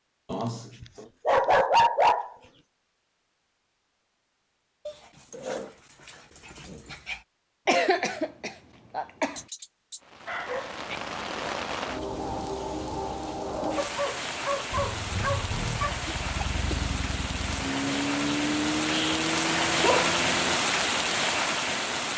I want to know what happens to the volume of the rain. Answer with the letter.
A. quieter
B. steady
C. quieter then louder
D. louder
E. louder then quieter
D.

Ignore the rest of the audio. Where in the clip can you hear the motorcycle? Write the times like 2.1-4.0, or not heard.
14.7-20.6.